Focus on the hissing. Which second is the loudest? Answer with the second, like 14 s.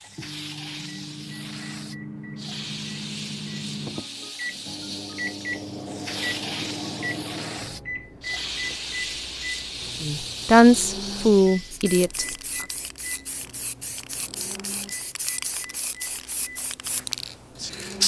18 s.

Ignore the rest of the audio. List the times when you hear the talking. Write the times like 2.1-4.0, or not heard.
10.0-12.7.